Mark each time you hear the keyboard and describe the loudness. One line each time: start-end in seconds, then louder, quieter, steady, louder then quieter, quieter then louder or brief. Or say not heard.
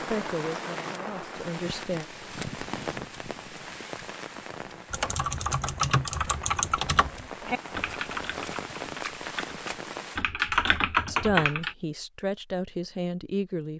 4.9-11.8 quieter then louder.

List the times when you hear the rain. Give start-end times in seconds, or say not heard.
0.0-10.2.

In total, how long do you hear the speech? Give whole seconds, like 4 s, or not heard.
5 s.